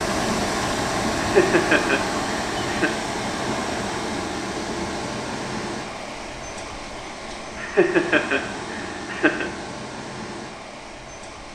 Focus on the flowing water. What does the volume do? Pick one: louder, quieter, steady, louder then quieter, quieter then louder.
quieter.